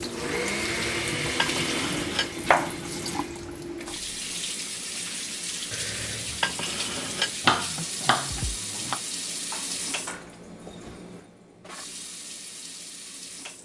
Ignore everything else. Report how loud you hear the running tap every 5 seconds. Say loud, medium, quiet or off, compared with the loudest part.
loud, loud, medium.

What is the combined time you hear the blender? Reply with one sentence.
You can hear the blender for 3 seconds altogether.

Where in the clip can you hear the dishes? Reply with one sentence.
You can hear the dishes from 0.9 to 2.3 s, from 5.7 to 7.3 s and from 9.3 to 10.4 s.